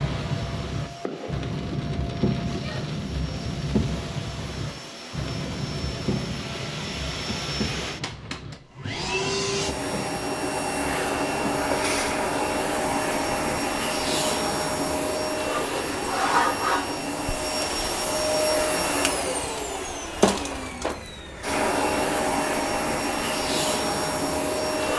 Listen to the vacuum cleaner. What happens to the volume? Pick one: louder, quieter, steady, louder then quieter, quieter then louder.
louder.